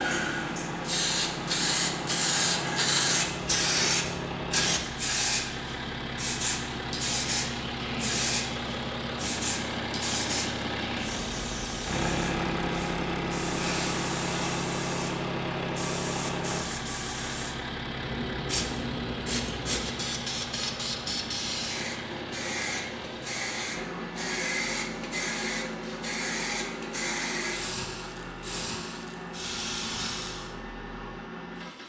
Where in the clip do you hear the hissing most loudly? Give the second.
3 s.